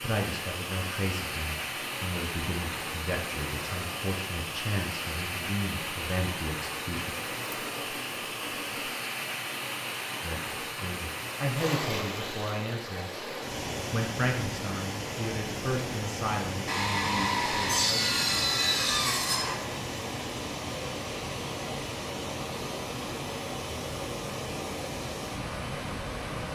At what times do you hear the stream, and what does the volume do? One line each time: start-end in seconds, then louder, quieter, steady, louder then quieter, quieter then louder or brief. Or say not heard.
0.0-26.5 steady.